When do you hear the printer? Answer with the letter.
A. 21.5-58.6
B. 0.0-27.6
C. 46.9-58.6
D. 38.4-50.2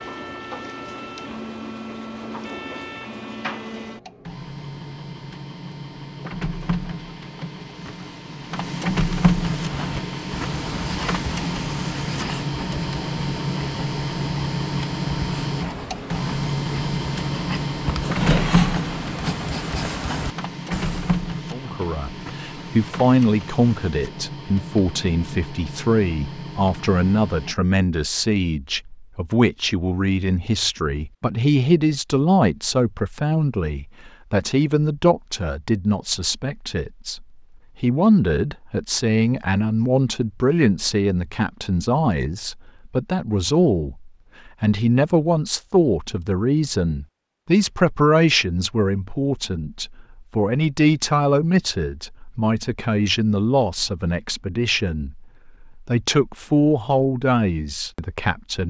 B.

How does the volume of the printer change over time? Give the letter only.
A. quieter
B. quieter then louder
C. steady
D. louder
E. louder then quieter
E.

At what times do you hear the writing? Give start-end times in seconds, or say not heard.
9.4-21.2.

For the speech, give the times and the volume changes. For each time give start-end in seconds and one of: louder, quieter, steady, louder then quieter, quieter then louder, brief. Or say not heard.
21.5-58.6 steady.